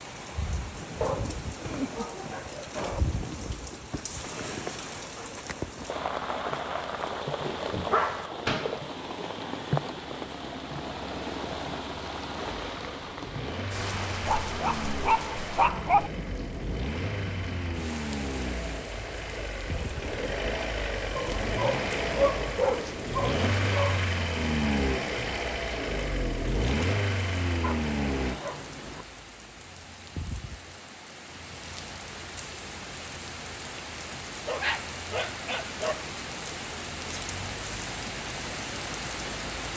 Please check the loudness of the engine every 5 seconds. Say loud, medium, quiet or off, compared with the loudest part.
off, off, medium, medium, loud, loud, off, off.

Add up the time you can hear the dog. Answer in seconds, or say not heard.
12 s.